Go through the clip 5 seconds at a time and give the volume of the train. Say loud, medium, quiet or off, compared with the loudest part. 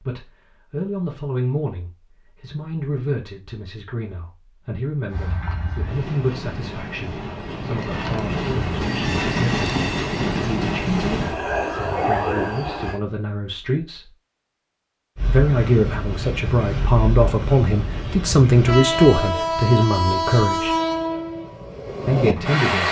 off, loud, loud, loud, loud.